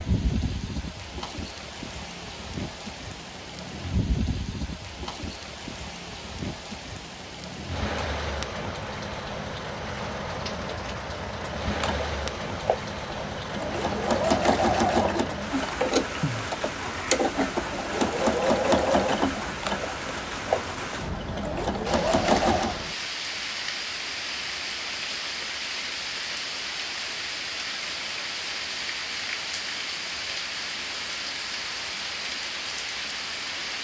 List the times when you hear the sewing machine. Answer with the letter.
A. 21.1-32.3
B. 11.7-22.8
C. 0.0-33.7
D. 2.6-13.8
B.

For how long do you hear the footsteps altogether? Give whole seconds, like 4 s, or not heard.
not heard.